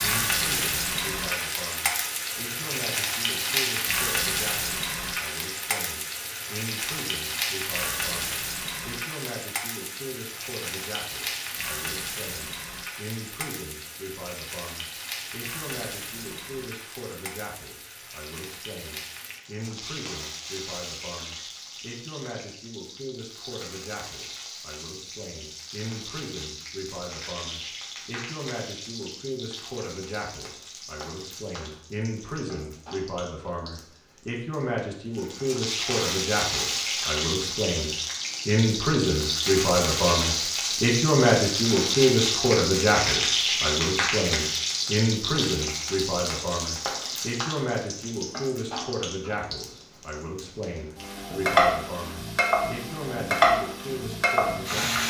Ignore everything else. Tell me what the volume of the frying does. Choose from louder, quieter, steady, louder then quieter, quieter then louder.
quieter then louder.